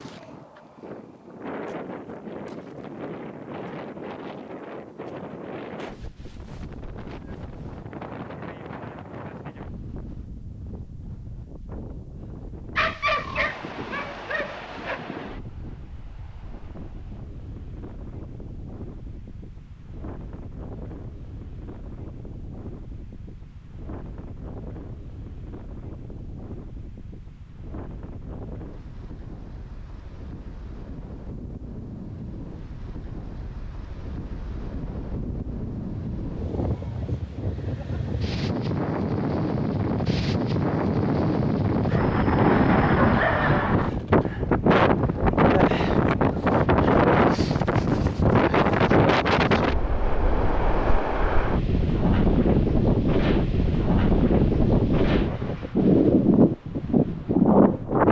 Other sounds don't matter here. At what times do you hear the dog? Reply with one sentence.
The dog can be heard from 12.8 to 15.0 s and from 41.9 to 43.7 s.